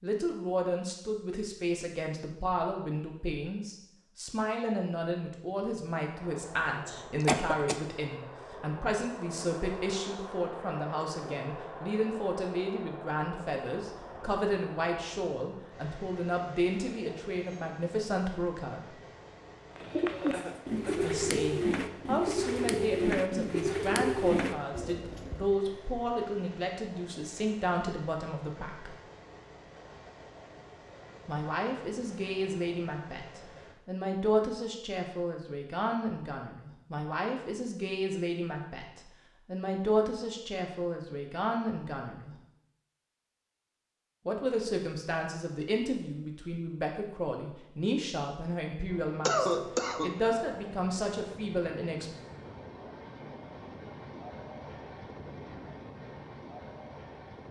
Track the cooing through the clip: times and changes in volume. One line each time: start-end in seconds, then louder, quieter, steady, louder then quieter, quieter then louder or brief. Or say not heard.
19.8-25.4 steady.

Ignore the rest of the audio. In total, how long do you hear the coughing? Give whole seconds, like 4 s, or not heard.
3 s.